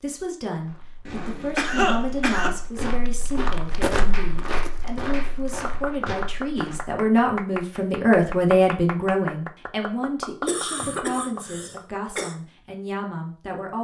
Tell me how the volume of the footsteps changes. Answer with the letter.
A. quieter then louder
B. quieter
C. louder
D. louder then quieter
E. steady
D.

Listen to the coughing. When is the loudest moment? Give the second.
2 s.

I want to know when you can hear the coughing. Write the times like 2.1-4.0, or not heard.
1.1-2.5, 10.4-12.3.